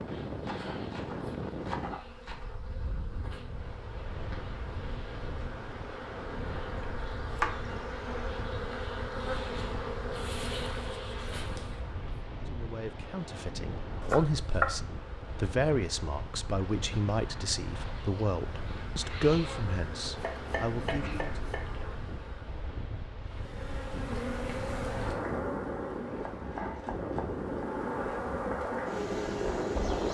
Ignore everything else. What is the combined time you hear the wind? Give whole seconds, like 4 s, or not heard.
30 s.